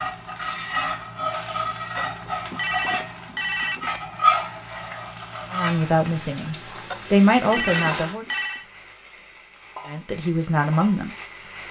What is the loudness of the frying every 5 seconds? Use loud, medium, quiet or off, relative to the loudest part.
loud, medium, quiet.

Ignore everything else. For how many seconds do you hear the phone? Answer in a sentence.
The phone can be heard for 4 seconds in total.